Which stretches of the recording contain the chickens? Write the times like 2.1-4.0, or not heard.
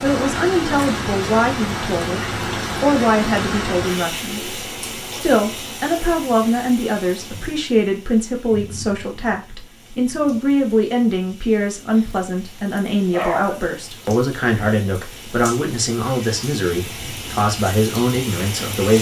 not heard.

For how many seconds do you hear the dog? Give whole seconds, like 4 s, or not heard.
2 s.